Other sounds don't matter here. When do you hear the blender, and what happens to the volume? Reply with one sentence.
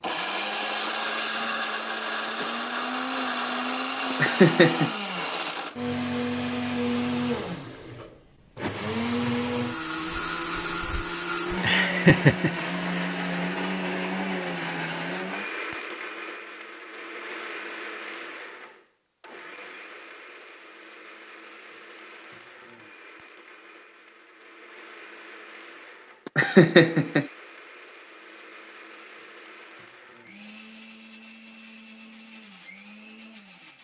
You can hear the blender from 0.0 to 33.7 s, getting quieter.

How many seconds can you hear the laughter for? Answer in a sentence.
You can hear the laughter for 3 seconds altogether.